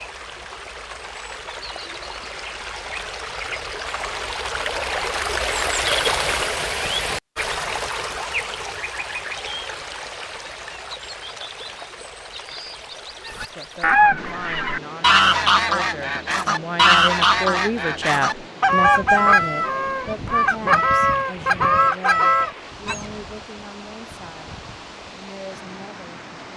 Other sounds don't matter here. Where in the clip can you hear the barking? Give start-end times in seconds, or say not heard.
not heard.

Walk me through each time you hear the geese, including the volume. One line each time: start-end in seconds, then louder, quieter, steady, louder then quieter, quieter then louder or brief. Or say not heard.
13.2-23.1 steady.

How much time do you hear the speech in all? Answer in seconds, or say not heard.
13 s.